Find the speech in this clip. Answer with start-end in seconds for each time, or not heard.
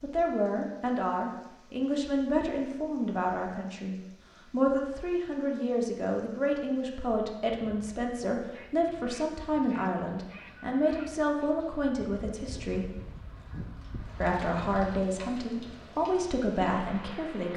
0.0-13.0, 14.2-17.5.